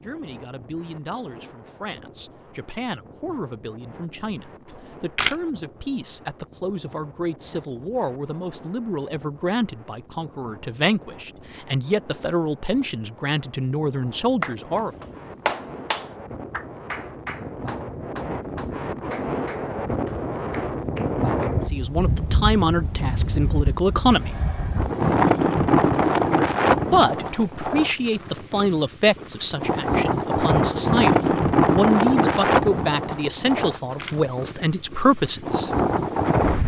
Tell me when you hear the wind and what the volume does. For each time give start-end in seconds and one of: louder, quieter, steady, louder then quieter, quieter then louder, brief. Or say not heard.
0.0-36.6 louder.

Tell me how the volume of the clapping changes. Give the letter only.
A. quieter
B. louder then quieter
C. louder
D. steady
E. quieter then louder
A.